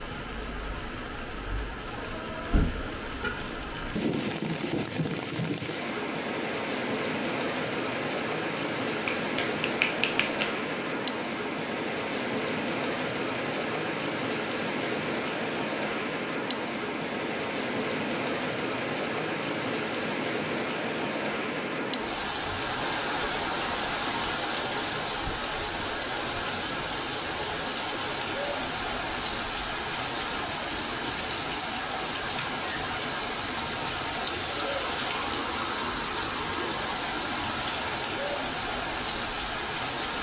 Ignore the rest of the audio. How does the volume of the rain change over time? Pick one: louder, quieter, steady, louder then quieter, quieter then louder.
steady.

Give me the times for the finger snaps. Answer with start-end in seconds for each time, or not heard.
9.0-10.6.